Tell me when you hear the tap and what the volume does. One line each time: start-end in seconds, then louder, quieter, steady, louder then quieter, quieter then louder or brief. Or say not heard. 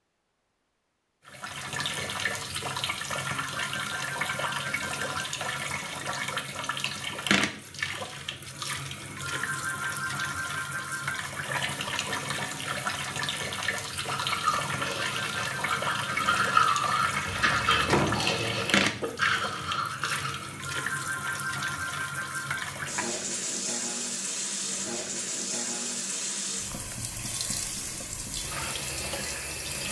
1.2-29.8 steady.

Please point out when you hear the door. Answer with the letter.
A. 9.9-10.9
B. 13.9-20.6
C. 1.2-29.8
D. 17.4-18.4
D.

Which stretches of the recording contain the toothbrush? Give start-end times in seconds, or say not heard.
13.9-20.6.